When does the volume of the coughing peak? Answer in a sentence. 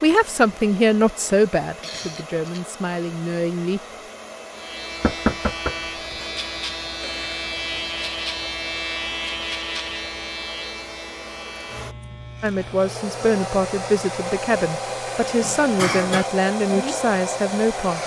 The loudest moment of the coughing is at 16 seconds.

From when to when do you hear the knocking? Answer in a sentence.
You can hear the knocking from 5.0 to 6.3 s.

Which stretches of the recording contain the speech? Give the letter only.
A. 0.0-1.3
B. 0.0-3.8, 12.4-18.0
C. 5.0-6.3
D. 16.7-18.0
B.